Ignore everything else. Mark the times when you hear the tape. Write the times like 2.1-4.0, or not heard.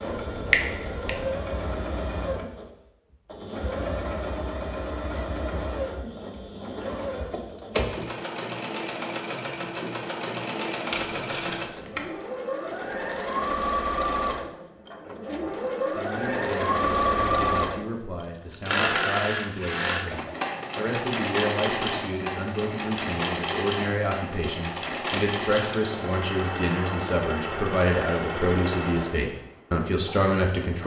10.9-12.1, 25.1-26.0.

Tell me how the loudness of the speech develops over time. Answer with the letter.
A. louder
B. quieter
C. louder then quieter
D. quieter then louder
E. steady
A.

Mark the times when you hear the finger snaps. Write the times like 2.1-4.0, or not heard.
0.1-1.4.